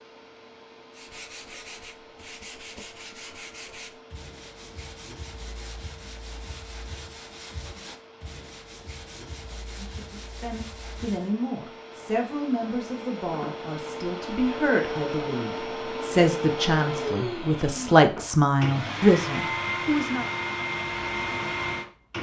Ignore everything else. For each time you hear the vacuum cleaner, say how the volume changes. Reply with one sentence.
You can hear the vacuum cleaner from 0.0 to 22.1 s, getting louder.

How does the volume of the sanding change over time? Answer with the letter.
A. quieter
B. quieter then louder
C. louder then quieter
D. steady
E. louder
D.